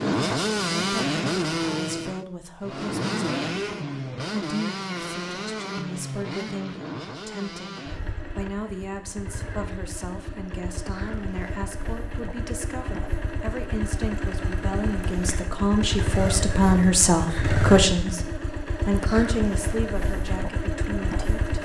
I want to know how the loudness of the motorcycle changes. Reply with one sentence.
The loudness of the motorcycle goes down, then up.